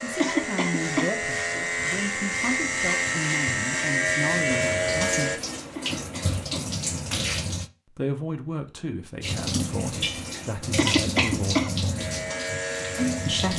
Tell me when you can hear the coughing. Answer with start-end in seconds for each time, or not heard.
0.1-1.1, 5.8-6.7, 10.8-11.7.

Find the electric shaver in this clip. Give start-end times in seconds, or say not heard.
0.0-5.4, 11.9-13.5.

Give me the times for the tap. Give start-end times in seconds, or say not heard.
4.5-7.7, 9.2-13.5.